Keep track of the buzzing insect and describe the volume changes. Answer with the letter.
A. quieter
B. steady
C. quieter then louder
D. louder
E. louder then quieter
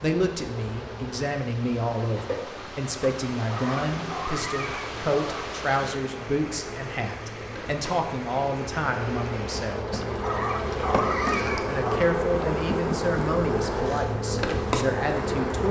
D.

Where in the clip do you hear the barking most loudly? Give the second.
11 s.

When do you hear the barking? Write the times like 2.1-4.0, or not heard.
3.5-5.5, 10.2-12.2.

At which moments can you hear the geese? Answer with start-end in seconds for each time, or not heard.
not heard.